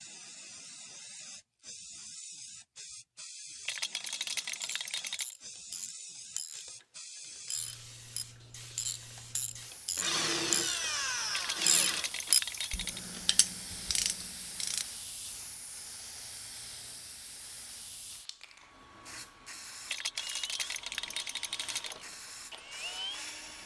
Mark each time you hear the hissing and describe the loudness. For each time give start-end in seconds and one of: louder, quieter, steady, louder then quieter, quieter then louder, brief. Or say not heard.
0.0-23.6 steady.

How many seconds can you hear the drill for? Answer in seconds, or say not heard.
6 s.